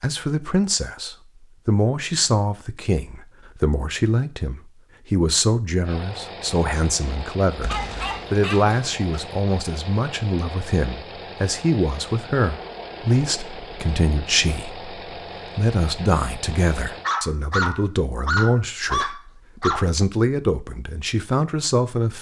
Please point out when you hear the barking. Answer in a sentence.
The barking can be heard from 7.7 to 9.2 s and from 17.0 to 19.9 s.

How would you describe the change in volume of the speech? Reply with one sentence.
The volume of the speech stays about the same.